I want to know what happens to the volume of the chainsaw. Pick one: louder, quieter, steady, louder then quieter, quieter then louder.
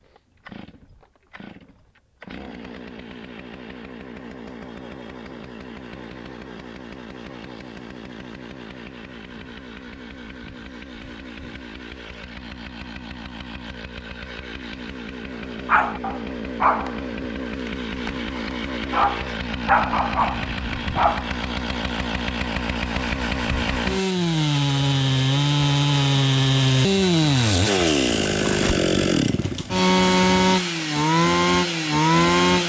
louder.